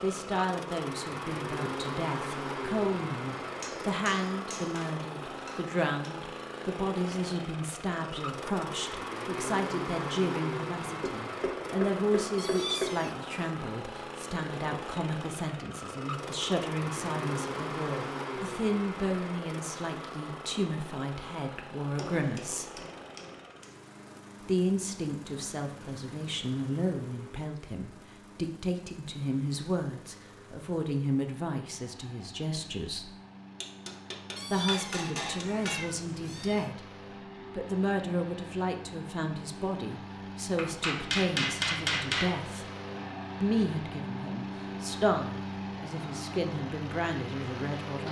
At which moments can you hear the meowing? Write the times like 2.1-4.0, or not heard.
12.3-13.3, 34.4-36.8.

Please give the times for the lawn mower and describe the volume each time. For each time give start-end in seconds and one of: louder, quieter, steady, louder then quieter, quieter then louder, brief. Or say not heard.
0.0-48.0 quieter then louder.